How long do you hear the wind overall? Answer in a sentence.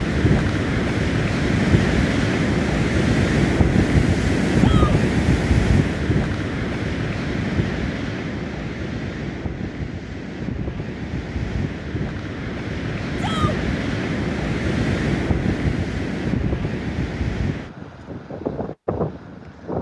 You can hear the wind for 20 seconds altogether.